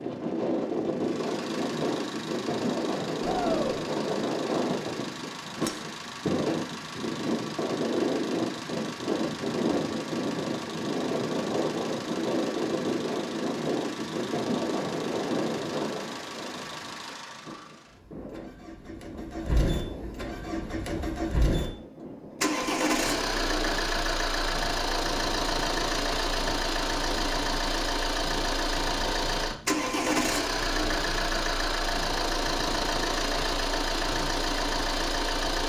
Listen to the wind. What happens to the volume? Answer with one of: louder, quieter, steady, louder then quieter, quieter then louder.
quieter.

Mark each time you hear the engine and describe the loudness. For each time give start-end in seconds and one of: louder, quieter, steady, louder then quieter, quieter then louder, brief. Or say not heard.
0.0-35.6 louder.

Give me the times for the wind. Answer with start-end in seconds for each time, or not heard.
0.0-35.6.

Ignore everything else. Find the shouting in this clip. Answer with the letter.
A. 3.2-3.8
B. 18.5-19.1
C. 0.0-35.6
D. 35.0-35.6
A.